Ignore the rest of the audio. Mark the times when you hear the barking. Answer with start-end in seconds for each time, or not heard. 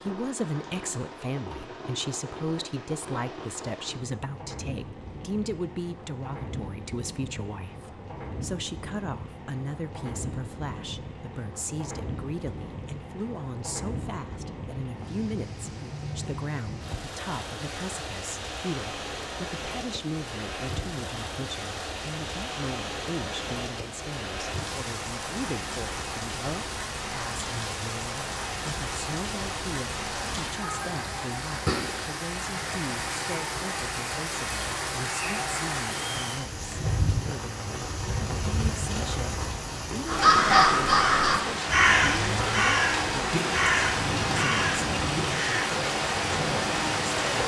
not heard.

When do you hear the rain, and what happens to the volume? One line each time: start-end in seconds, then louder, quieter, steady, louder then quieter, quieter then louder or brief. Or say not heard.
0.0-47.4 louder.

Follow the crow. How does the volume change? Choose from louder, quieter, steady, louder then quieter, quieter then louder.
quieter.